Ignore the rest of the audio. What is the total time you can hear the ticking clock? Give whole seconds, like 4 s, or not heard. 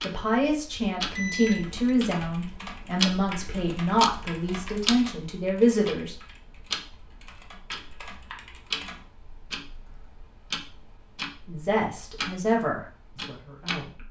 14 s.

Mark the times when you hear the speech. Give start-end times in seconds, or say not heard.
0.0-6.2, 11.4-14.0.